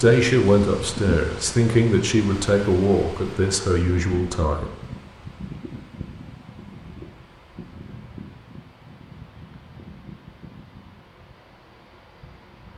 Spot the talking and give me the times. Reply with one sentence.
You can hear the talking from 0.0 to 4.7 s.